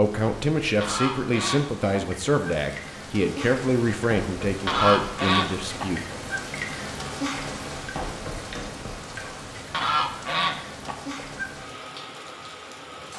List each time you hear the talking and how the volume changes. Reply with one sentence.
The talking can be heard from 0.0 to 6.0 s, at a steady volume.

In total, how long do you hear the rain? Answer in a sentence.
The rain can be heard for 13 seconds in total.